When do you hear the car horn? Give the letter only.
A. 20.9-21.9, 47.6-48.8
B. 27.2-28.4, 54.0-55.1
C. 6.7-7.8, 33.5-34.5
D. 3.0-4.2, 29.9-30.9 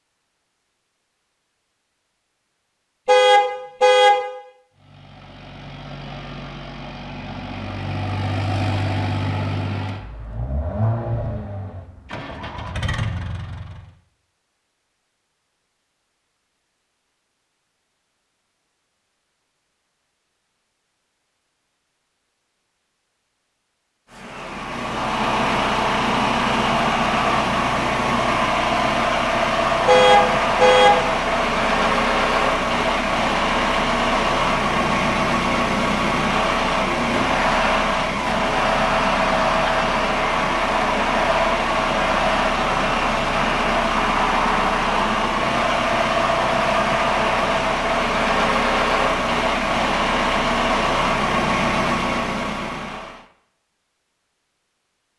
D.